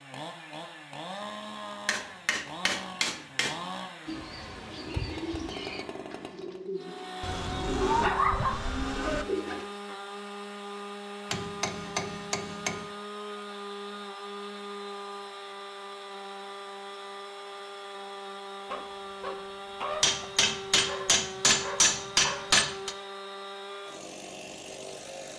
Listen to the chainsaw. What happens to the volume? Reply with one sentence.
The loudness of the chainsaw stays about the same.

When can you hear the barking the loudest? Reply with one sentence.
The volume of the barking peaks at 8 seconds.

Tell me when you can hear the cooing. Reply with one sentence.
You can hear the cooing from 4.0 to 9.7 s.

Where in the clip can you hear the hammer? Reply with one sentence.
The hammer can be heard from 1.9 to 3.5 s, from 11.3 to 12.8 s and from 20.0 to 22.9 s.